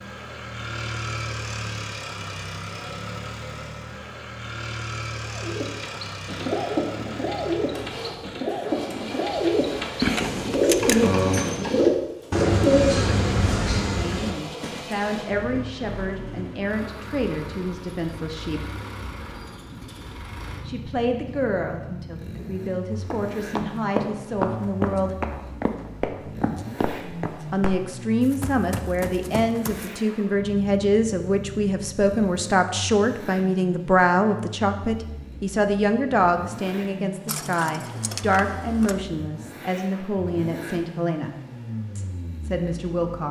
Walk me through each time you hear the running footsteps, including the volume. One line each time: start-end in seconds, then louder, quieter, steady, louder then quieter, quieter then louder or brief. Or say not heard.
22.9-29.9 quieter.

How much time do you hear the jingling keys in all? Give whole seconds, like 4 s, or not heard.
3 s.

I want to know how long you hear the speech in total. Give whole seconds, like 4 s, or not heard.
24 s.